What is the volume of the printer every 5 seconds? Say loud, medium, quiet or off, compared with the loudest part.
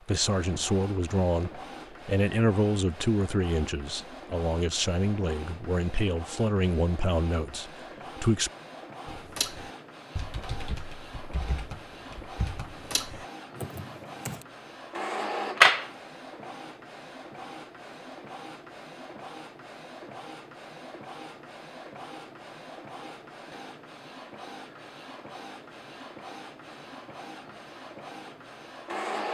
quiet, quiet, quiet, loud, quiet, medium.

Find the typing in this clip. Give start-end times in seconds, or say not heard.
9.1-14.4.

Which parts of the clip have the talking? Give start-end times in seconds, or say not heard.
0.1-8.5.